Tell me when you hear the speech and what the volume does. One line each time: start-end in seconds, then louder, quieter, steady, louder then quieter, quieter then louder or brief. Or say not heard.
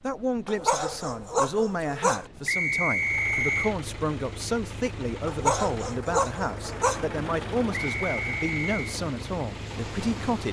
0.0-10.4 steady.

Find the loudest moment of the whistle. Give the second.
3 s.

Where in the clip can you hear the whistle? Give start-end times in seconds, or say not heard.
2.5-3.8, 7.8-8.8.